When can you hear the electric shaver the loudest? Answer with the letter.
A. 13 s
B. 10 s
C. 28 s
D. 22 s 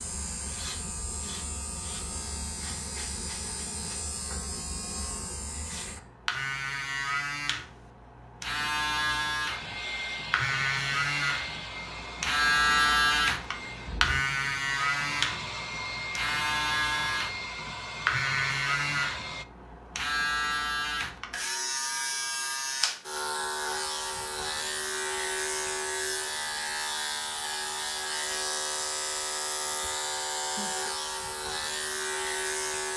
A.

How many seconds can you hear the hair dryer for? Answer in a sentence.
You can hear the hair dryer for 10 seconds altogether.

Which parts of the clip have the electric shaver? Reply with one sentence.
The electric shaver can be heard from 0.0 to 32.9 s.